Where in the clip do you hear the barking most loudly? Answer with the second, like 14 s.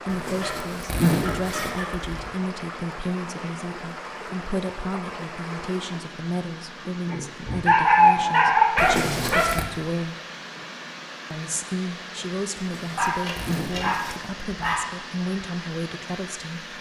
8 s.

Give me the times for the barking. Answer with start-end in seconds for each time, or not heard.
0.2-2.1, 7.7-9.4, 12.9-14.8.